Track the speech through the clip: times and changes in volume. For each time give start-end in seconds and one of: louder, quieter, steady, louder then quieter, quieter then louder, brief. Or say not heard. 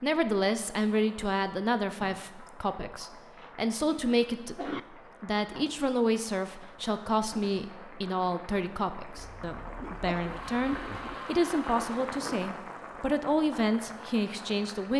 0.0-14.9 steady.